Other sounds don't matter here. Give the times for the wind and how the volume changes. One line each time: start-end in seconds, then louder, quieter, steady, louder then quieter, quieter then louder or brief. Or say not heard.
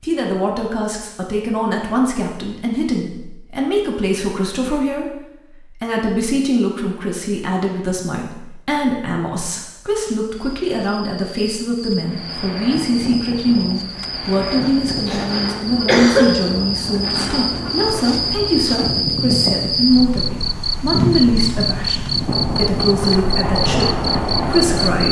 12.0-25.0 louder.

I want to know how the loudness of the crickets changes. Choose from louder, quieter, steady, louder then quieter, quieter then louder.
louder.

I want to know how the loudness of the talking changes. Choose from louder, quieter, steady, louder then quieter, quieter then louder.
steady.